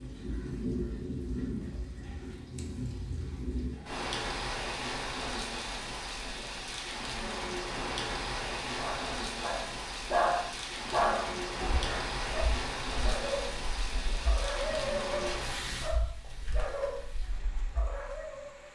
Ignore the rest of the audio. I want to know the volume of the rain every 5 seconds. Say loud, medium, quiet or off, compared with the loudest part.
loud, loud, loud, medium.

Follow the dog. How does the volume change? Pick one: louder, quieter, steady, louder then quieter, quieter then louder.
quieter.